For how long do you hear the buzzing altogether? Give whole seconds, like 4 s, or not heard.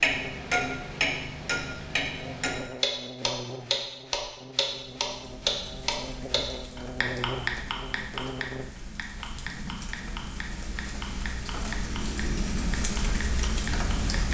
9 s.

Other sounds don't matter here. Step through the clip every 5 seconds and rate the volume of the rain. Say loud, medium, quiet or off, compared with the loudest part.
off, medium, loud.